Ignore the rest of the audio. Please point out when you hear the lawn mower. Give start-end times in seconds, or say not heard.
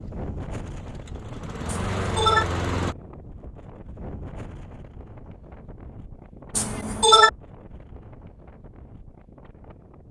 0.0-3.0.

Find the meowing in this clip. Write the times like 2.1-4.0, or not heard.
1.6-2.5, 6.5-7.3.